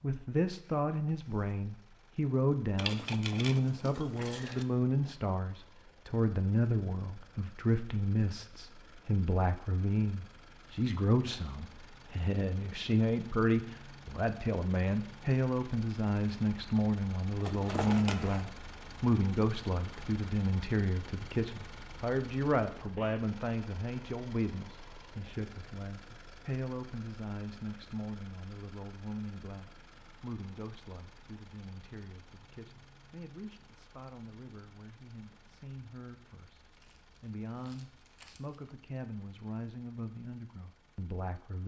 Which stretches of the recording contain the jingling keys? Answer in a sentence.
You can hear the jingling keys from 2.8 to 4.7 s, from 17.4 to 18.4 s and from 36.7 to 38.7 s.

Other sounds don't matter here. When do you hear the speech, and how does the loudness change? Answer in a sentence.
You can hear the speech from 0.0 to 41.6 s, getting quieter.